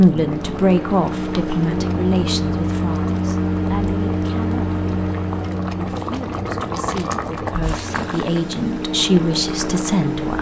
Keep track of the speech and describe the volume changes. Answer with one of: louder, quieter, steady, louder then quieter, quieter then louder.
quieter then louder.